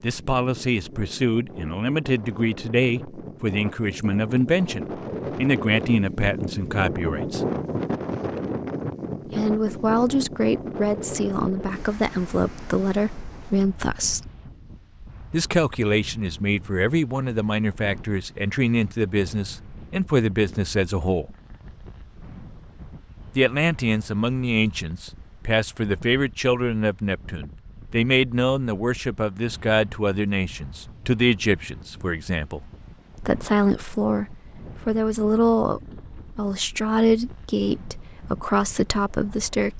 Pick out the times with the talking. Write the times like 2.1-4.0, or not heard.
0.0-7.4, 9.2-14.3, 15.3-21.4, 23.4-39.7.